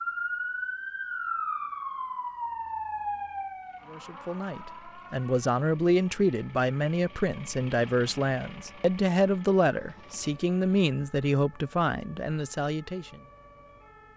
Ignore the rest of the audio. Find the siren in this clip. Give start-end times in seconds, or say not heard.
0.0-14.1.